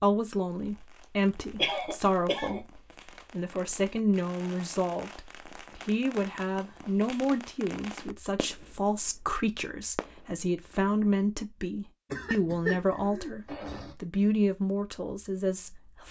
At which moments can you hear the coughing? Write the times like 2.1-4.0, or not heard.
1.6-2.6, 12.1-13.9.